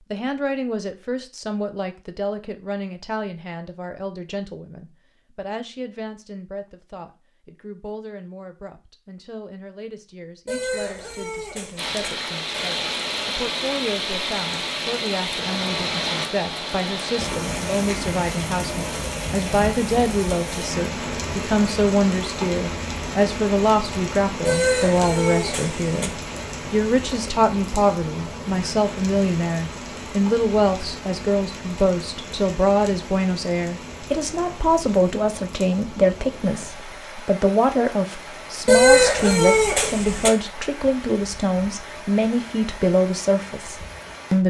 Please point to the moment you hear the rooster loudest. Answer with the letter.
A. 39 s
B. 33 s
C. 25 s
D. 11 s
A.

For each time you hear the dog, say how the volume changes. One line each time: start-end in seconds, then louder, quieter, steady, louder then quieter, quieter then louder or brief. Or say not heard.
not heard.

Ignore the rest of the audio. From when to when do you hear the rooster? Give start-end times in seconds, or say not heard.
10.4-11.9, 24.4-26.1, 38.6-40.3.